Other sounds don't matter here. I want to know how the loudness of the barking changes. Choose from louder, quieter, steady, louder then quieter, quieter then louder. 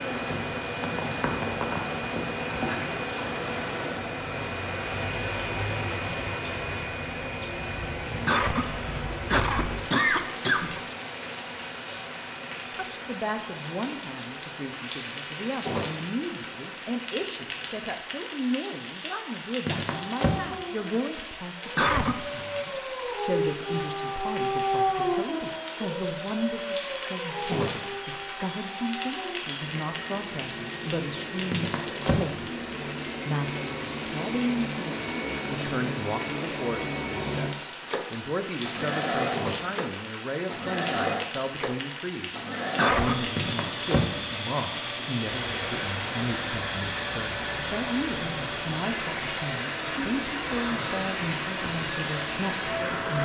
louder then quieter.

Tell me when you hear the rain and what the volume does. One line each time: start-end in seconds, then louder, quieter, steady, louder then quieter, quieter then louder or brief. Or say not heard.
0.0-53.2 steady.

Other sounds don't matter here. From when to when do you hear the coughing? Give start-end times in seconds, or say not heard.
8.2-10.8, 21.8-22.2, 42.8-43.4.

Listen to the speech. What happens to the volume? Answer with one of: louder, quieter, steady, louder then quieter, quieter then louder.
steady.